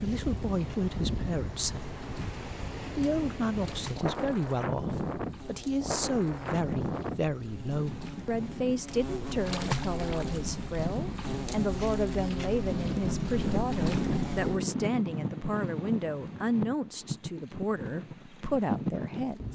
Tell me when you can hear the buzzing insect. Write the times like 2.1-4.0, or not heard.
0.0-14.6.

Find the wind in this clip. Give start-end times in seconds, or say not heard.
0.0-19.4.